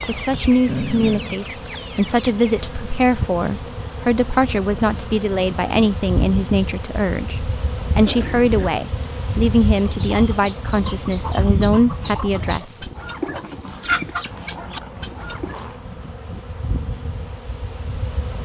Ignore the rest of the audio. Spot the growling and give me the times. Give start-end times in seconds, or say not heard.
0.7-1.4, 8.1-8.7, 13.6-15.8.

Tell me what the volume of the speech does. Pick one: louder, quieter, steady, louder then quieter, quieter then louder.
steady.